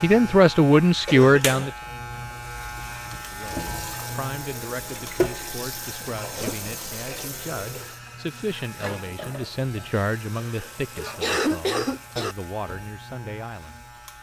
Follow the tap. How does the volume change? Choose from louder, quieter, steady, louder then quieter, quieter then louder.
louder then quieter.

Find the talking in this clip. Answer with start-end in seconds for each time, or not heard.
0.0-1.7, 3.2-13.8.